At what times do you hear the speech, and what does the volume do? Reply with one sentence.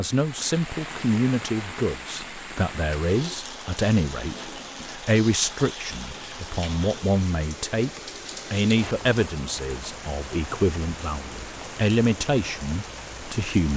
You can hear the speech from 0.0 to 13.7 s, at a steady volume.